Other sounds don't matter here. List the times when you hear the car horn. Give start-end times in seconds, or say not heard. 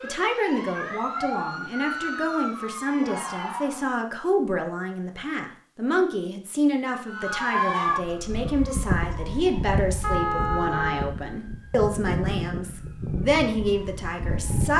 10.0-11.1.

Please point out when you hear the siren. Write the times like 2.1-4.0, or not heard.
0.0-4.0, 7.0-14.7.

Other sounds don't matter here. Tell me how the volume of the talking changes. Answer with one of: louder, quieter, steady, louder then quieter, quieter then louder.
steady.